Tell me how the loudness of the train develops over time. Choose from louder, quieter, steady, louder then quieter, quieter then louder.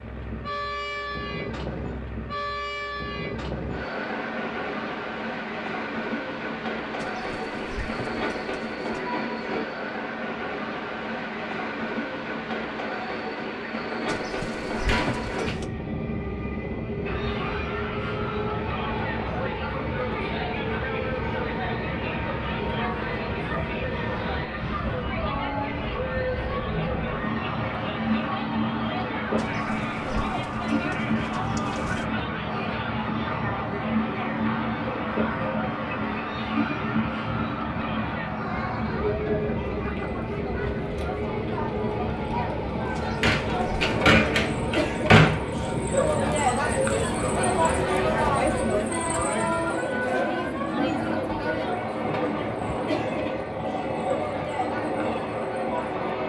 steady.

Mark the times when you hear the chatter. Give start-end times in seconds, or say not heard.
17.0-56.2.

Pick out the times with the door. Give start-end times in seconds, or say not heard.
14.7-15.6, 43.0-45.4.